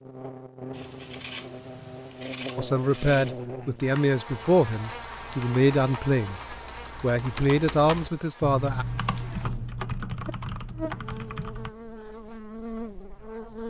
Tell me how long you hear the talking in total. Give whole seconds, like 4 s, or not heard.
6 s.